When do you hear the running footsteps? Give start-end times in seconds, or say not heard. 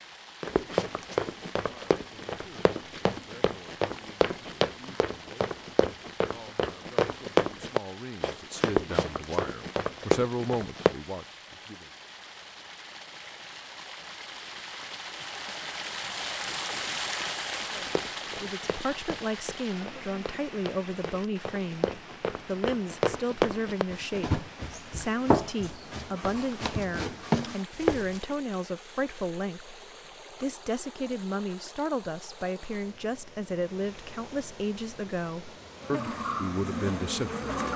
0.4-10.9, 17.8-28.2.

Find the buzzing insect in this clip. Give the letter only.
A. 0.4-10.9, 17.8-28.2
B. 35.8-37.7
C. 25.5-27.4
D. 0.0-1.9
B.